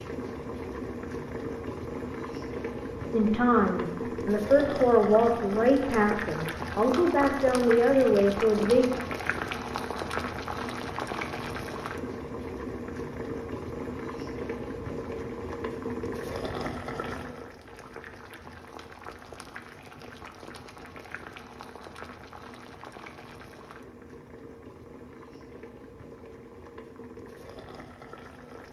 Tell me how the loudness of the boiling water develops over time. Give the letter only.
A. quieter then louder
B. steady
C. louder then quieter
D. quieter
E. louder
D.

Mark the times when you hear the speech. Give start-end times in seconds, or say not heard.
3.1-8.9.